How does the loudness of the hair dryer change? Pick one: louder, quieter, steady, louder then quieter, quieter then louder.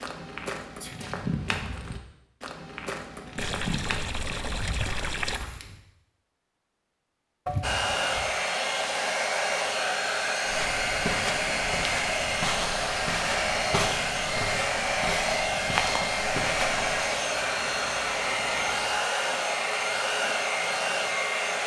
steady.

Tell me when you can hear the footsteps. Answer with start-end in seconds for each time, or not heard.
0.0-5.8, 10.4-17.0.